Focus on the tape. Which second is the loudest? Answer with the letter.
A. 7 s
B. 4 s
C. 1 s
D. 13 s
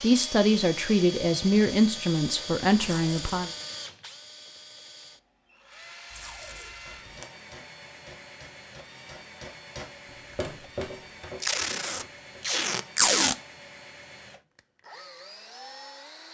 D.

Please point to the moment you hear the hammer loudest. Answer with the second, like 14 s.
11 s.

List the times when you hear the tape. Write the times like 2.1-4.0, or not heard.
2.8-3.4, 6.1-7.3, 11.4-13.3.